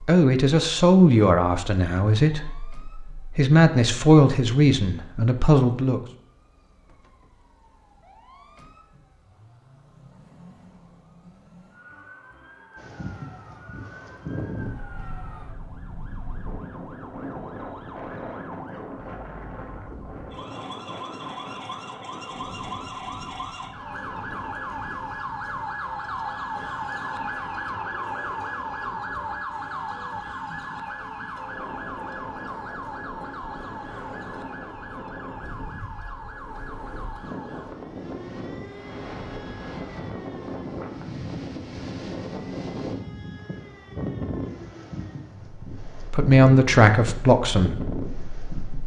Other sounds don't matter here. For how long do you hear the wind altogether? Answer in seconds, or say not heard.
36 s.